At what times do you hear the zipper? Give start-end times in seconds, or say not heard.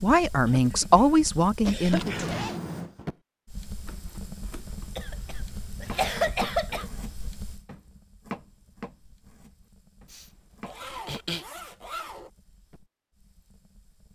1.6-2.6, 5.0-6.5, 10.6-12.3.